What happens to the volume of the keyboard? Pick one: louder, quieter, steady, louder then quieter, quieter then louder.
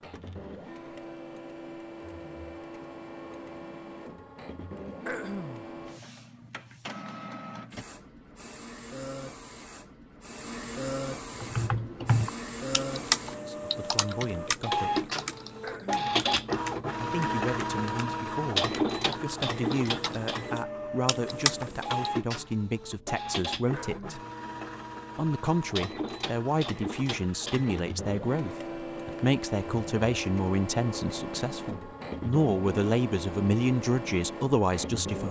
quieter then louder.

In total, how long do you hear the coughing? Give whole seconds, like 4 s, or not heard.
2 s.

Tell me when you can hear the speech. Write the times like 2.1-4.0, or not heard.
13.4-15.1, 17.0-24.2, 25.1-35.2.